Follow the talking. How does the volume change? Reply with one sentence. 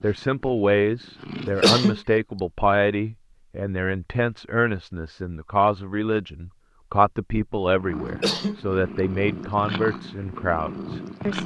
The loudness of the talking stays about the same.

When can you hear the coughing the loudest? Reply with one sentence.
The loudest moment of the coughing is at 2 seconds.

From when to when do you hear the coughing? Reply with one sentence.
You can hear the coughing from 1.4 to 2.0 s and from 8.1 to 8.6 s.